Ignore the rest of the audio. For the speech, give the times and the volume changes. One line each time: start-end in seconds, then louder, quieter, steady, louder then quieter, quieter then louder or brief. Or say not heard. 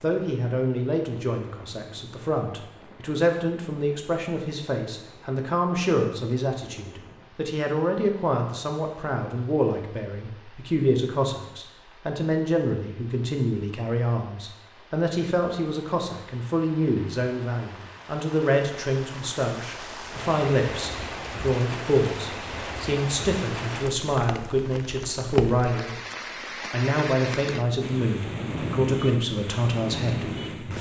0.0-26.0 steady
26.7-30.7 steady.